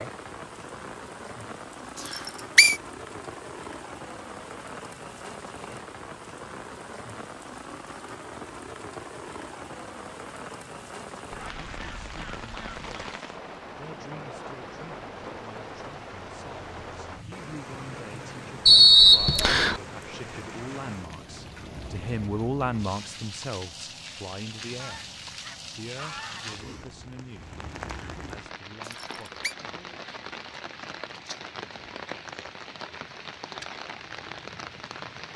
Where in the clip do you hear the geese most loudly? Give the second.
26 s.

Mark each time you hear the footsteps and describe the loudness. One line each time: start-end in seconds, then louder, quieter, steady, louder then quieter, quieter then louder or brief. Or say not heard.
not heard.